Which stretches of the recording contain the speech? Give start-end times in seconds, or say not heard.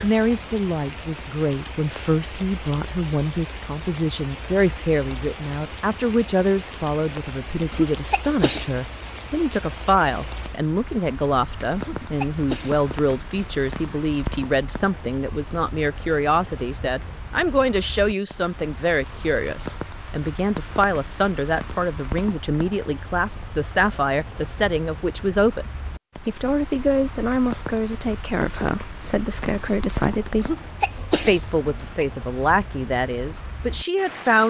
0.0-30.6, 31.2-34.4.